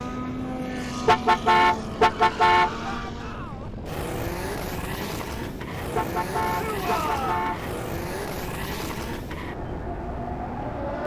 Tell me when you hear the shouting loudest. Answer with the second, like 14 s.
7 s.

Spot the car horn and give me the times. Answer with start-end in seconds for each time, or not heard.
1.1-3.0, 6.0-7.8.